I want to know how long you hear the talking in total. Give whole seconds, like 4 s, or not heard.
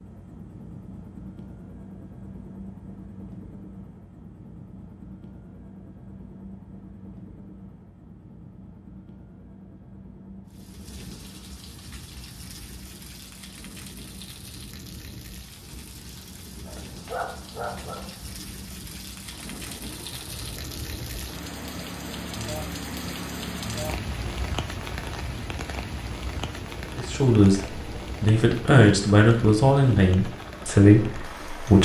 5 s.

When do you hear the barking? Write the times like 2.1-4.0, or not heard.
16.6-18.1.